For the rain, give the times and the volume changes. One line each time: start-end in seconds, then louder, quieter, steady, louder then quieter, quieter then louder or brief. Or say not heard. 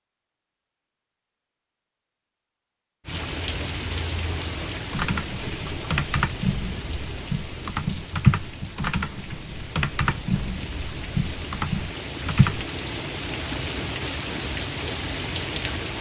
3.0-15.9 quieter then louder.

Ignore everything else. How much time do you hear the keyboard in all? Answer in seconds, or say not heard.
8 s.